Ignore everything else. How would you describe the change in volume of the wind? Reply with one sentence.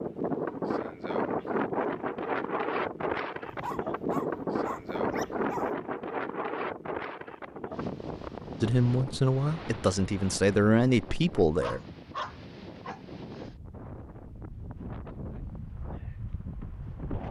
The volume of the wind goes down.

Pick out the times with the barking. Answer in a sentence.
The barking can be heard from 3.5 to 5.7 s and from 11.6 to 13.4 s.